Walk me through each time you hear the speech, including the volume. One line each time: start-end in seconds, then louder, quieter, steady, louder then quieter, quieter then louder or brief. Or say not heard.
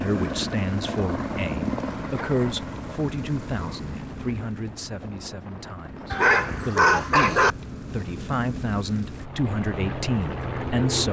0.0-11.0 quieter then louder.